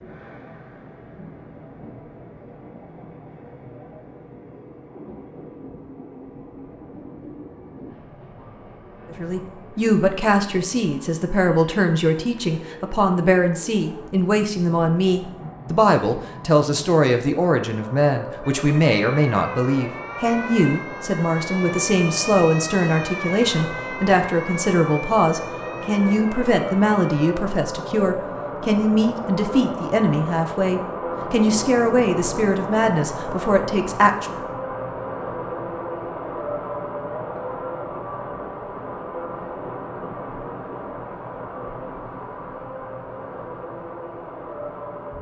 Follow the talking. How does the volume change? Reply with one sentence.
The loudness of the talking stays about the same.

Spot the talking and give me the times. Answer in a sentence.
The talking can be heard from 9.1 to 34.4 s.